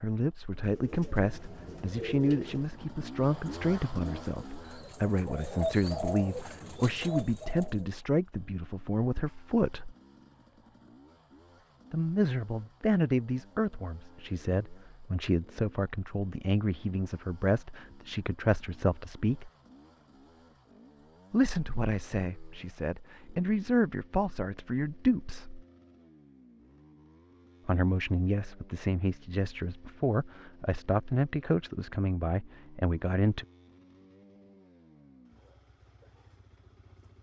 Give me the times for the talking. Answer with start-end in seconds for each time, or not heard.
0.0-9.9, 11.9-19.5, 21.3-25.6, 27.6-33.5.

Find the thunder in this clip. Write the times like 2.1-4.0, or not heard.
not heard.